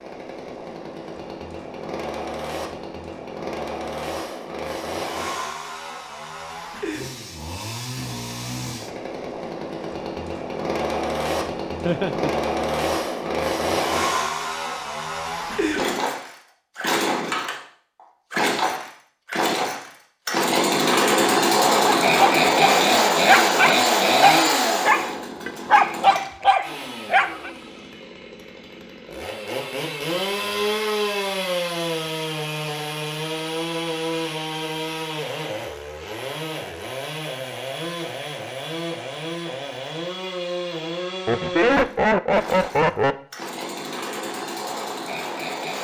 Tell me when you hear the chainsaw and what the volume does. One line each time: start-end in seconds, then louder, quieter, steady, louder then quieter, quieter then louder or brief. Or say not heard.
0.0-45.7 louder then quieter.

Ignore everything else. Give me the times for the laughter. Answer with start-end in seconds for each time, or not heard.
11.8-12.3, 41.2-43.1.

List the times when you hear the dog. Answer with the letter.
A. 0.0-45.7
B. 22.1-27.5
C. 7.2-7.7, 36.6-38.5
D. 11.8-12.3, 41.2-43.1
B.